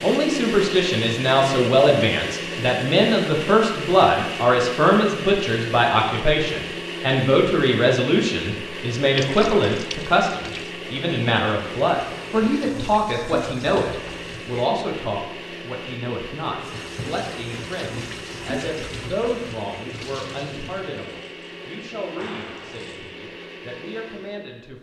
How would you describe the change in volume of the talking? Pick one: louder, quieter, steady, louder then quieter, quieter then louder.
quieter.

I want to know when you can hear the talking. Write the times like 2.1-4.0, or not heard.
0.0-24.7.